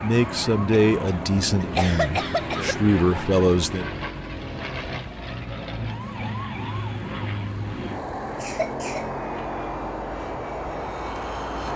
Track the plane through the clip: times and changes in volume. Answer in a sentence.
You can hear the plane from 0.0 to 11.7 s, at a steady volume.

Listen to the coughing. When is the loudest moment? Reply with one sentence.
The loudest moment of the coughing is at 2 seconds.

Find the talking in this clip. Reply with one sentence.
The talking can be heard from 0.0 to 3.9 s.